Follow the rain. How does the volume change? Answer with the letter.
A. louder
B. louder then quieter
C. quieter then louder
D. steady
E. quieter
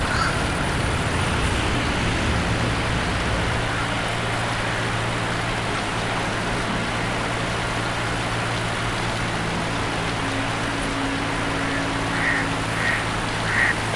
D.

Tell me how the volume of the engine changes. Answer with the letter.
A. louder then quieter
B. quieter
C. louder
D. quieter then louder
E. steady
E.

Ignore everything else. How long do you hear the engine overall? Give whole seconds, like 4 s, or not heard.
14 s.